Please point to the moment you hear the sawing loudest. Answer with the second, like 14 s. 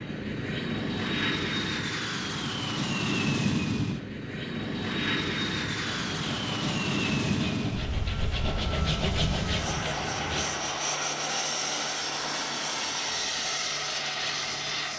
9 s.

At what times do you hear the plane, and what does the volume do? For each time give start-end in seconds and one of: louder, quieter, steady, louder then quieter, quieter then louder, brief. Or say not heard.
0.0-14.9 steady.